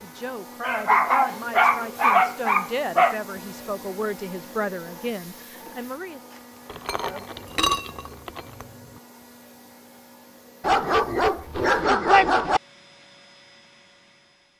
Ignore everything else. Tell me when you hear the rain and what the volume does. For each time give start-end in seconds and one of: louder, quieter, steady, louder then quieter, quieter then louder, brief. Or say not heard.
not heard.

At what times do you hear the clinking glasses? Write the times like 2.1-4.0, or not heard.
6.7-9.0.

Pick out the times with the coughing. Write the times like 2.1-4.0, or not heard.
not heard.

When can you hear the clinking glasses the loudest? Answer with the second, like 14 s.
8 s.